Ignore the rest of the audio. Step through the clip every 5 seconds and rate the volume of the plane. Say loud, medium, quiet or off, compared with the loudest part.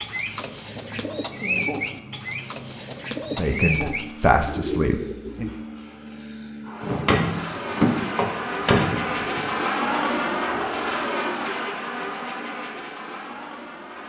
quiet, loud, loud.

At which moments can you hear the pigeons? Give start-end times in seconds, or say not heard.
0.0-5.7.